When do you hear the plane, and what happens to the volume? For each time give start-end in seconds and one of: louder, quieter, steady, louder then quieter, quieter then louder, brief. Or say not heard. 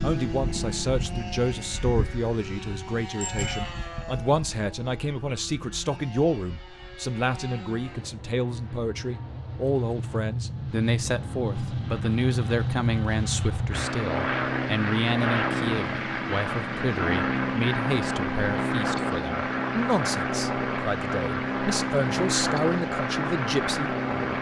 0.0-24.3 quieter then louder.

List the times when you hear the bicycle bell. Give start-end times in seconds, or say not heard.
3.2-3.7.